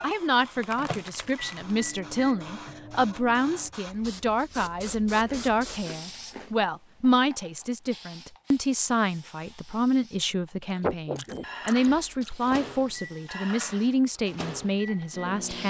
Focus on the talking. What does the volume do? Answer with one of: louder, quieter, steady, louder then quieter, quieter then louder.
steady.